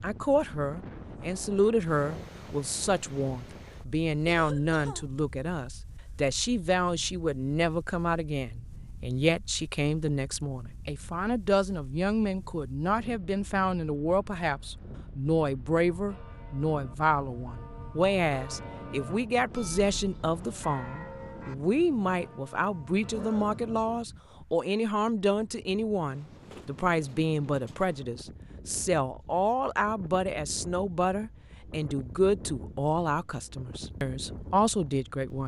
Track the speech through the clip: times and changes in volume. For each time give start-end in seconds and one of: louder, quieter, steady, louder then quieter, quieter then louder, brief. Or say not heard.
0.0-35.4 steady.